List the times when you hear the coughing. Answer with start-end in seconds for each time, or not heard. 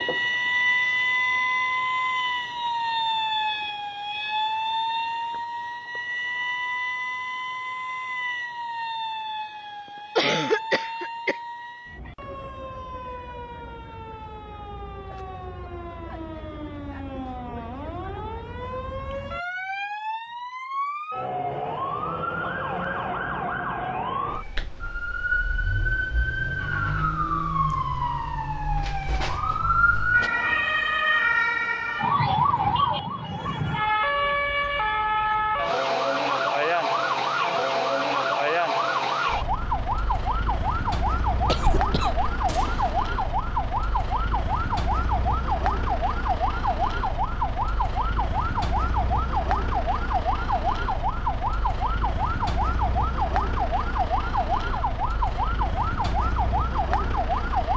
10.2-11.3, 41.5-43.0.